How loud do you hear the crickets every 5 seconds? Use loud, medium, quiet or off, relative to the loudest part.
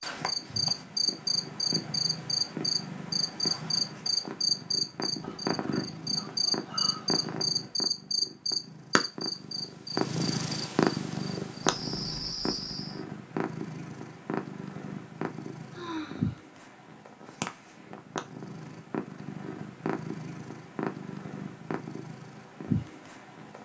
loud, loud, medium, off, off.